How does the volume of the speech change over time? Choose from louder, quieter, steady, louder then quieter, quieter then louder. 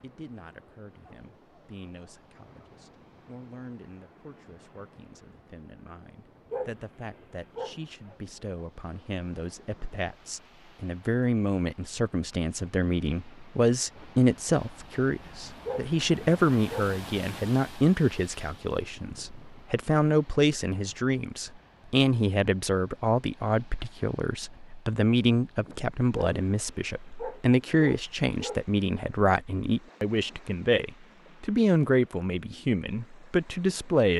louder.